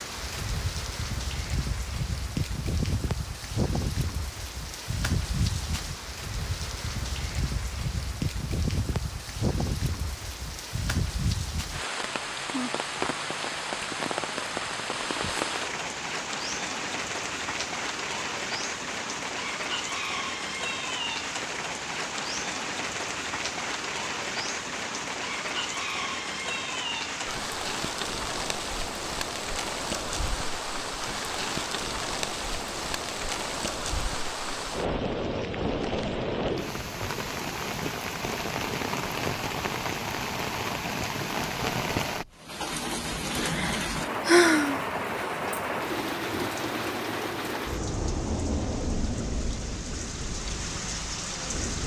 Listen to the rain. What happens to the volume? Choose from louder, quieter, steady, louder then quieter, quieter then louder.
steady.